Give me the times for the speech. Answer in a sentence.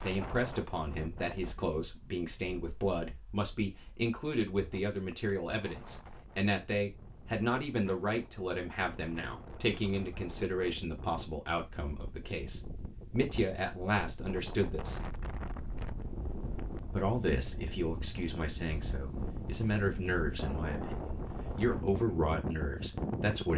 The speech can be heard from 0.0 to 15.0 s and from 16.9 to 23.5 s.